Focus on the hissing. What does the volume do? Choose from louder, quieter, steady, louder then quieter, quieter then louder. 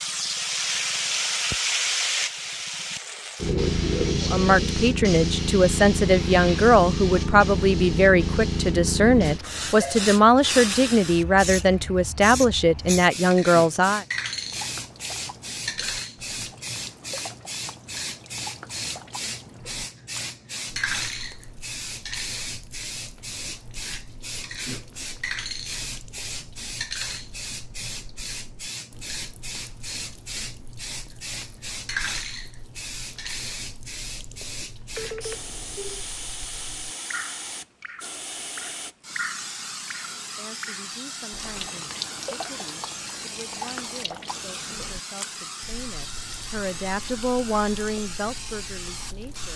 quieter.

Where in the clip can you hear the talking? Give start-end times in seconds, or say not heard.
4.2-14.1, 40.2-49.5.